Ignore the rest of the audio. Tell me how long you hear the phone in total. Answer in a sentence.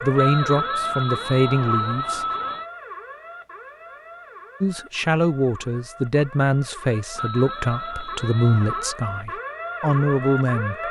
The phone can be heard for 4 seconds in total.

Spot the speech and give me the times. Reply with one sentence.
The speech can be heard from 0.0 to 2.2 s and from 4.6 to 10.8 s.